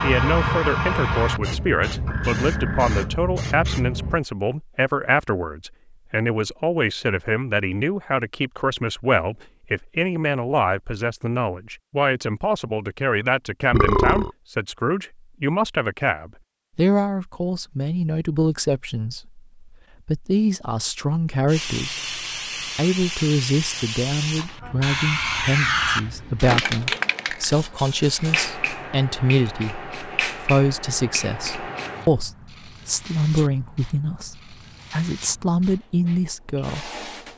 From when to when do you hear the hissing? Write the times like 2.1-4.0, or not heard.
0.0-4.2, 21.4-37.3.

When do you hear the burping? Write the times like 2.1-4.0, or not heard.
13.7-14.3.